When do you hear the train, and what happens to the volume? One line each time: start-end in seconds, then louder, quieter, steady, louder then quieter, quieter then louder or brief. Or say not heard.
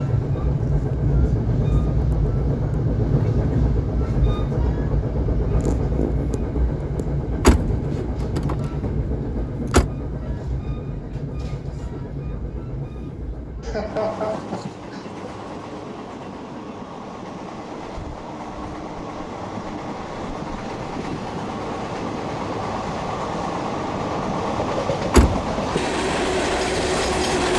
0.0-27.5 quieter then louder.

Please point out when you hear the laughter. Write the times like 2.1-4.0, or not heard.
13.6-15.2.